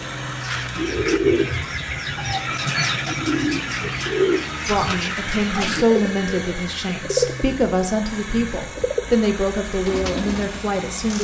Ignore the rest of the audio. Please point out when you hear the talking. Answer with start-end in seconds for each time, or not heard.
4.7-11.1.